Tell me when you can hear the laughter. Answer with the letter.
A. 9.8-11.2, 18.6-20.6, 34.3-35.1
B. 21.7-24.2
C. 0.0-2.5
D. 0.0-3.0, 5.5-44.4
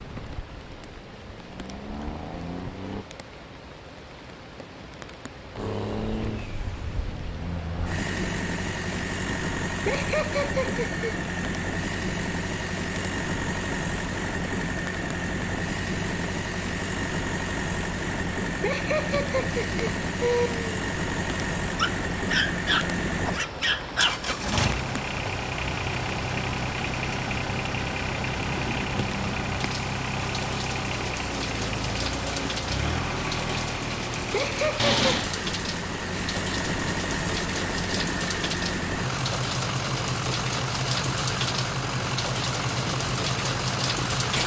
A.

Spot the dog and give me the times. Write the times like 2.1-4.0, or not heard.
21.7-24.2.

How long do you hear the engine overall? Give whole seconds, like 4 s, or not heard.
42 s.